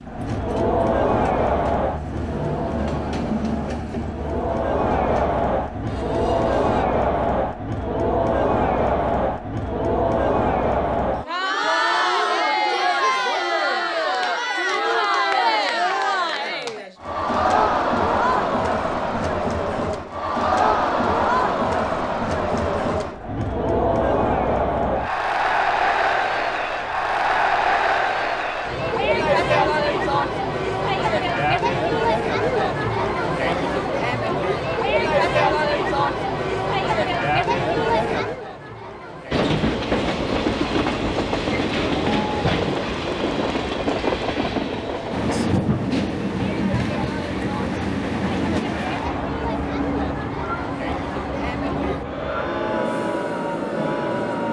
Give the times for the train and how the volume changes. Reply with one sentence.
You can hear the train from 0.0 to 6.8 s, getting louder then quieter; and from 39.3 to 54.4 s, getting quieter.